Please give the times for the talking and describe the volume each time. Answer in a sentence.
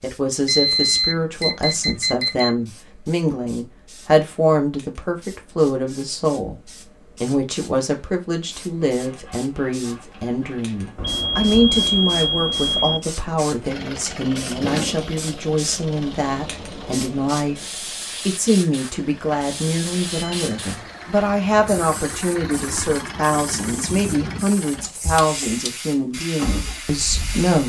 You can hear the talking from 0.0 to 27.6 s, at a steady volume.